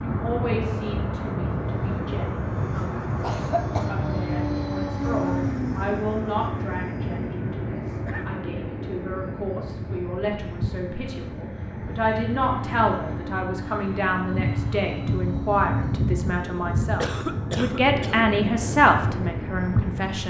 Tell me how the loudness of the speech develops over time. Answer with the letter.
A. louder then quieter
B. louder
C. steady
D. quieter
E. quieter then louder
B.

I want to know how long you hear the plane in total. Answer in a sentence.
You can hear the plane for 20 seconds altogether.